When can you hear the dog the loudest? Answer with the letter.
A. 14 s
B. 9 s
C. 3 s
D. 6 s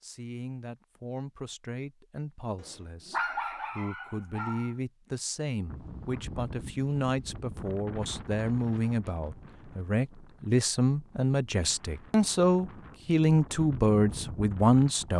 C.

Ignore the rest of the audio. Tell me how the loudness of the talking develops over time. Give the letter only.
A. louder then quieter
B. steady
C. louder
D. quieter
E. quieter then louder
C.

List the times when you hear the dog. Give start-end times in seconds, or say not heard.
2.5-4.8.